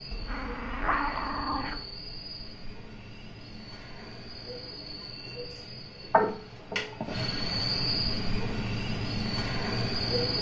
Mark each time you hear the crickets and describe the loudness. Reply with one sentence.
You can hear the crickets from 0.0 to 10.3 s, getting louder.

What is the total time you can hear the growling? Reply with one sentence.
The growling can be heard for 3 seconds in total.